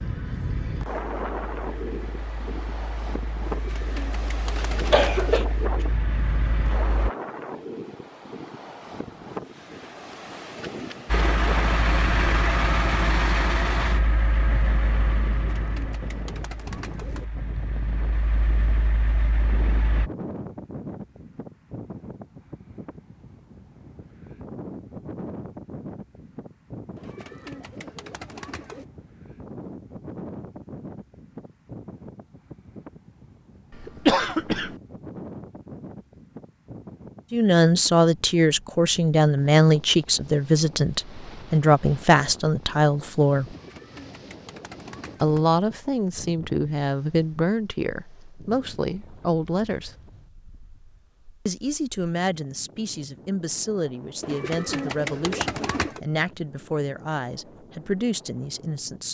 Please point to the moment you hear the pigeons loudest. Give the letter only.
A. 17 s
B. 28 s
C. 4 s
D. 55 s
D.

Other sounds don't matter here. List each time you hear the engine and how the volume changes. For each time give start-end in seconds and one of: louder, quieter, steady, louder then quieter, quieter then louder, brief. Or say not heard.
0.0-7.1 louder
11.1-20.1 quieter then louder.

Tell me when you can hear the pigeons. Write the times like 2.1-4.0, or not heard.
3.5-5.5, 15.2-17.2, 26.9-28.9, 43.5-45.5, 54.2-56.0.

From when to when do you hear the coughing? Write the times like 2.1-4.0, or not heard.
4.7-5.5, 33.7-34.7.